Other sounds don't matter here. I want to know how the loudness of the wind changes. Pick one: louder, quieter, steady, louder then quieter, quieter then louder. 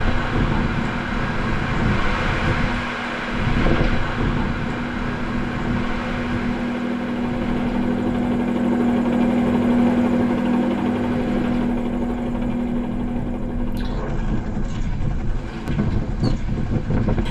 quieter then louder.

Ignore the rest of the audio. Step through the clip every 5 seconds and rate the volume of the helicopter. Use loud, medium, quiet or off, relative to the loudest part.
medium, loud, loud, quiet.